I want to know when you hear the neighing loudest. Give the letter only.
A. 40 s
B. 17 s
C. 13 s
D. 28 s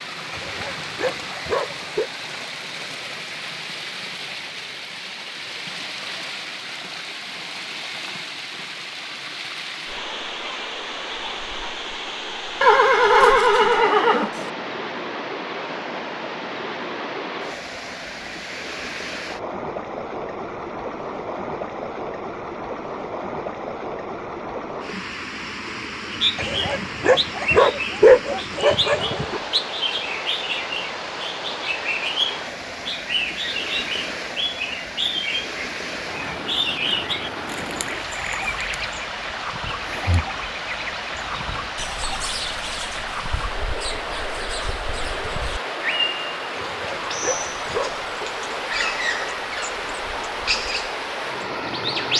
C.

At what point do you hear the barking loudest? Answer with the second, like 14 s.
28 s.